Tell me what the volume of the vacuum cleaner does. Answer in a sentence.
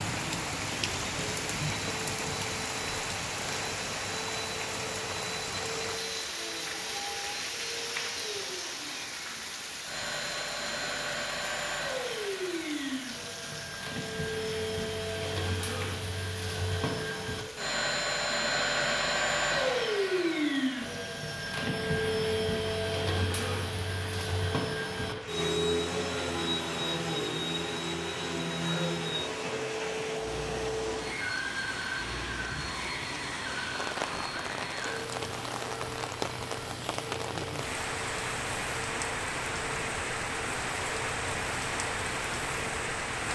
The volume of the vacuum cleaner goes up, then down.